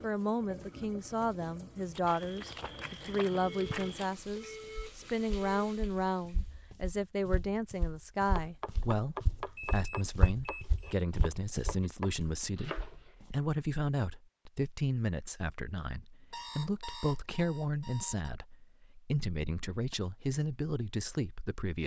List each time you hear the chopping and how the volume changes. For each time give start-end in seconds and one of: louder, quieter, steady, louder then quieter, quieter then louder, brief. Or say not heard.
8.3-13.2 quieter then louder.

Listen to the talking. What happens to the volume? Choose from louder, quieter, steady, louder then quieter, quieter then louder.
steady.